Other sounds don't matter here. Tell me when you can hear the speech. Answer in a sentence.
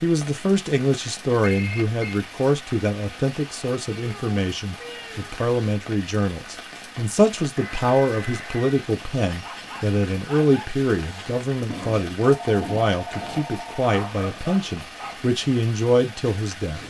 The speech can be heard from 0.0 to 16.8 s.